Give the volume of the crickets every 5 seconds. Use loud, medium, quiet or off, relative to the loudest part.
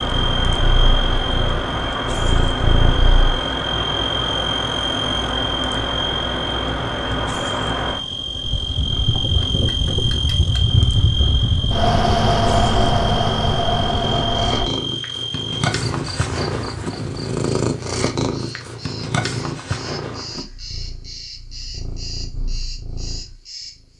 loud, loud, loud, medium, medium.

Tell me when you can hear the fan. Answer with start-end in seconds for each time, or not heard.
0.0-14.7.